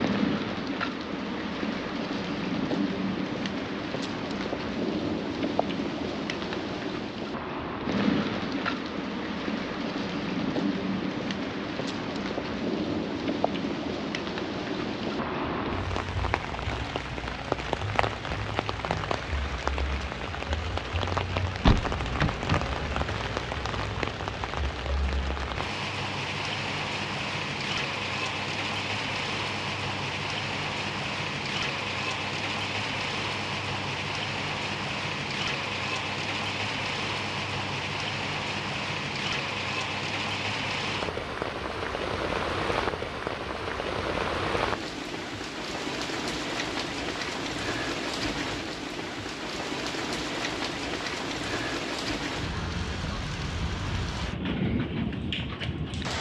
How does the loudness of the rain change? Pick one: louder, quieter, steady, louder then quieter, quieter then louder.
steady.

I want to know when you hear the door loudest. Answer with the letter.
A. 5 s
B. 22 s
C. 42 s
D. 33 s
B.